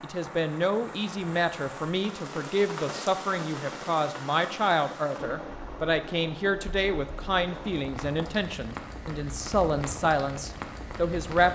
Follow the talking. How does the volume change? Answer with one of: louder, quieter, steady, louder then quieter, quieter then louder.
steady.